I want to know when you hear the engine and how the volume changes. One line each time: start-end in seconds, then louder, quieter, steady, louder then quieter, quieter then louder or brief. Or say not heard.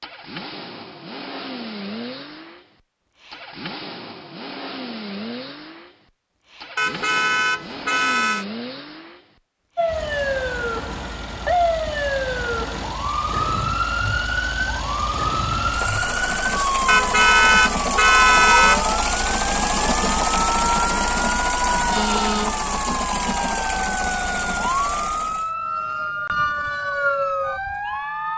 0.0-25.5 louder.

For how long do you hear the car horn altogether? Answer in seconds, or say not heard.
4 s.